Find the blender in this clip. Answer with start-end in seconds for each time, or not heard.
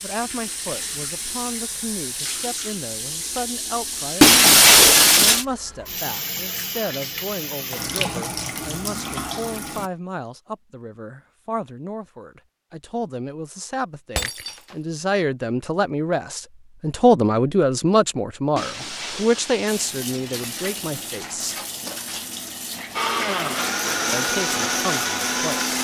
22.9-25.7.